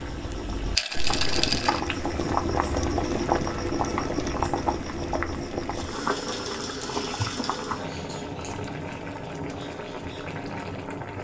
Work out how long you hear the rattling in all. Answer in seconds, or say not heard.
3 s.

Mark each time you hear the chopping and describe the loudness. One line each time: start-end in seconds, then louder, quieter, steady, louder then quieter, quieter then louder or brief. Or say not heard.
not heard.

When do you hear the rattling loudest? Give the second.
1 s.